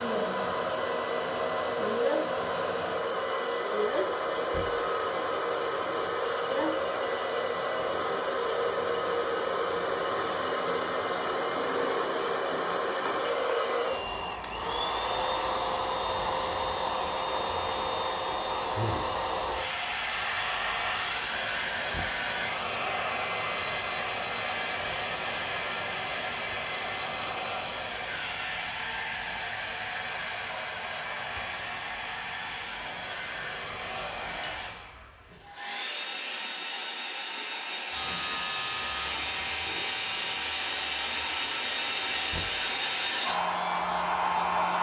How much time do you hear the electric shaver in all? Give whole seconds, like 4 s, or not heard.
7 s.